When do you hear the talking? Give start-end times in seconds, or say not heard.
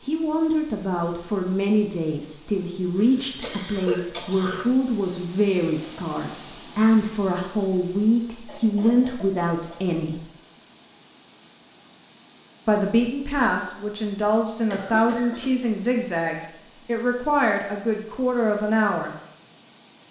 0.0-10.2, 12.7-19.1.